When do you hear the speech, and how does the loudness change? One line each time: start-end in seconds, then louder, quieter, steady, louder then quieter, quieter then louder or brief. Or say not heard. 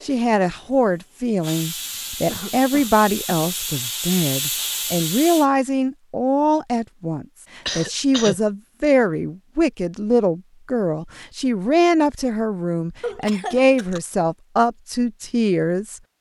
0.0-16.0 steady.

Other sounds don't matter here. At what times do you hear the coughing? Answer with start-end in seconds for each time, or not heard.
2.2-3.5, 7.7-8.3, 13.0-14.0.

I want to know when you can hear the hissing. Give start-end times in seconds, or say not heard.
0.0-5.5.